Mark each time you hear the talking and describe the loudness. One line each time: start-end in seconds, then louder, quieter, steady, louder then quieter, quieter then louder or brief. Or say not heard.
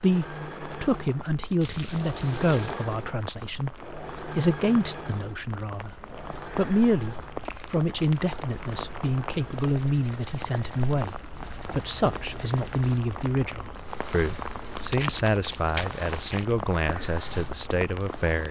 0.0-6.0 steady
6.5-18.4 steady.